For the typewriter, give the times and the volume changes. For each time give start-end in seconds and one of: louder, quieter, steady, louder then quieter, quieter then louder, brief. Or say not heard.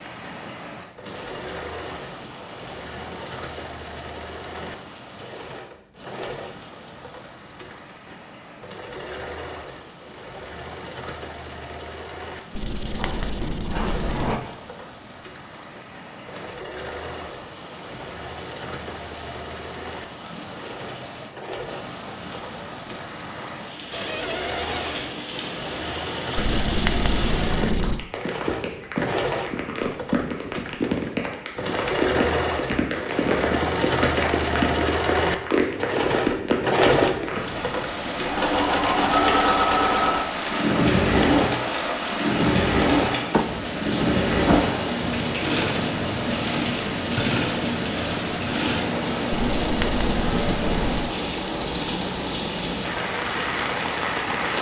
not heard.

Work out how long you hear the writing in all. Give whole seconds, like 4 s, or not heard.
5 s.